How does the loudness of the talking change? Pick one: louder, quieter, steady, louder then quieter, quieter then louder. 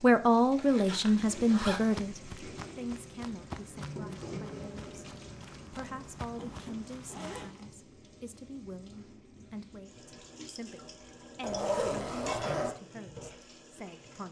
quieter.